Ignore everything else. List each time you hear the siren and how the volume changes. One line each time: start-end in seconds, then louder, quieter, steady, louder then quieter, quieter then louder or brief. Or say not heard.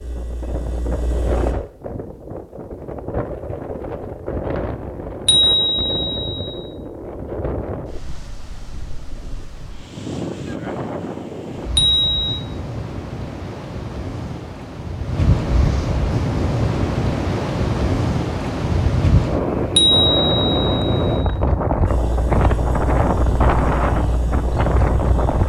not heard.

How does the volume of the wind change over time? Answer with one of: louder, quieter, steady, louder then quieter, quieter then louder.
louder.